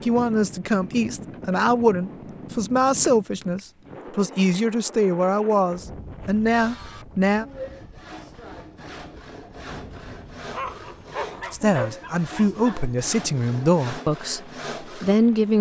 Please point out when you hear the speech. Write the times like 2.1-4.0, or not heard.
0.0-7.5, 11.5-15.5.